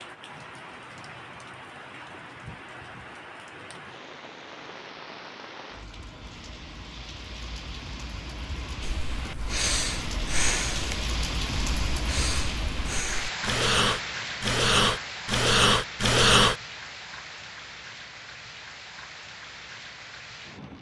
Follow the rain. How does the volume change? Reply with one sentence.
The loudness of the rain goes up, then down.